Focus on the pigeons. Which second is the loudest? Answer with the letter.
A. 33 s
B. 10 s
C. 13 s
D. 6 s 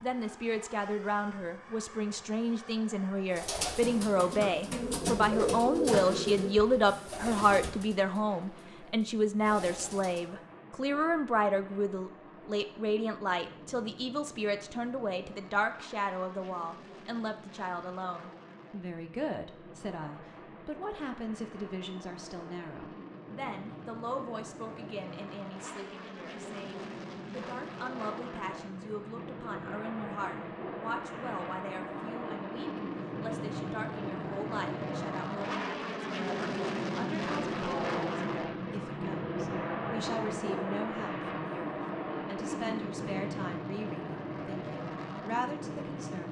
D.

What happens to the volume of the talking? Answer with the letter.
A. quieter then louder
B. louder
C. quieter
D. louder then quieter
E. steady
C.